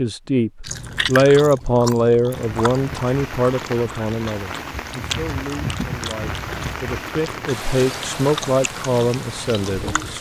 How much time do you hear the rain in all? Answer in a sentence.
You can hear the rain for 8 seconds altogether.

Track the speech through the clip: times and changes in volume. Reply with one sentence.
You can hear the speech from 0.0 to 10.1 s, getting quieter then louder.